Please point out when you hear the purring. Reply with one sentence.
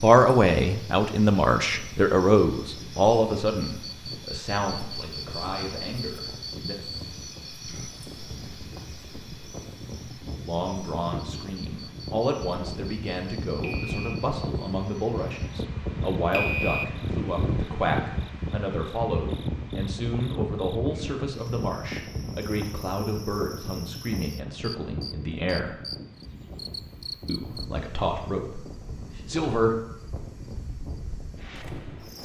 The purring can't be heard in this clip.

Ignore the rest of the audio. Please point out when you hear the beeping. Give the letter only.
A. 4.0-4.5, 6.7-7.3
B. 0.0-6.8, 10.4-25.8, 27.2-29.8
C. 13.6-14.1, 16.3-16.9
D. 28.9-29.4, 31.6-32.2
C.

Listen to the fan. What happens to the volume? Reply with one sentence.
The loudness of the fan goes up, then down.